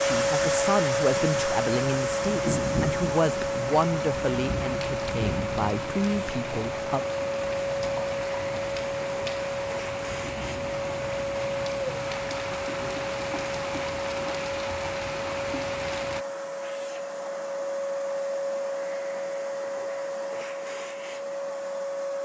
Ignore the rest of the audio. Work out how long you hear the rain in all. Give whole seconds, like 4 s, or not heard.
16 s.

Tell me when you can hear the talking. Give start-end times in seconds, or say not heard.
0.0-7.0.